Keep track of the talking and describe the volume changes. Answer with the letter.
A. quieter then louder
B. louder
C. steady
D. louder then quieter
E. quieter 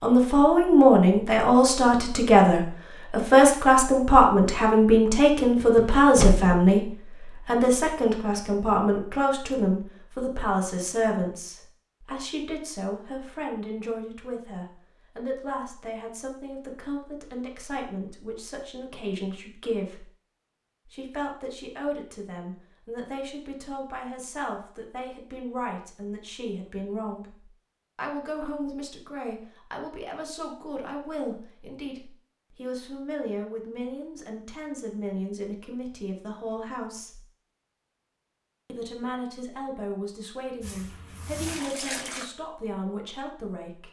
E.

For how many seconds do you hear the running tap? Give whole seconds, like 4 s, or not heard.
2 s.